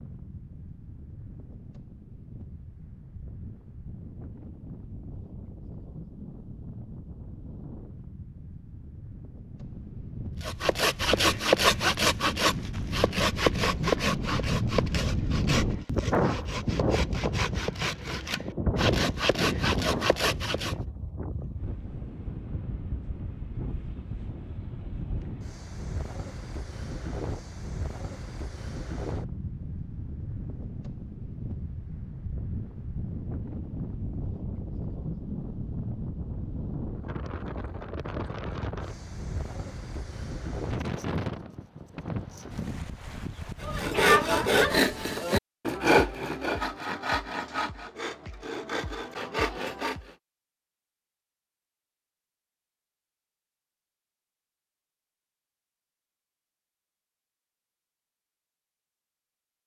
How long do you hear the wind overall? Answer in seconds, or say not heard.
45 s.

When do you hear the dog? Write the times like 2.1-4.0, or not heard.
not heard.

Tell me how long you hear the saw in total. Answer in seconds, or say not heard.
17 s.